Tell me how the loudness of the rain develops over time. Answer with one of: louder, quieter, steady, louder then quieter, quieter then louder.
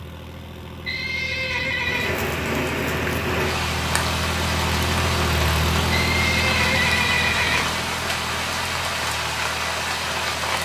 steady.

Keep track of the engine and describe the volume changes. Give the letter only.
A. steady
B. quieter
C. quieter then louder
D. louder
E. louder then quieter
E.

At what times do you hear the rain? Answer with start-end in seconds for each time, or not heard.
1.8-10.6.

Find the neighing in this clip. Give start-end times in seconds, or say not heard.
0.8-2.1, 5.9-7.7.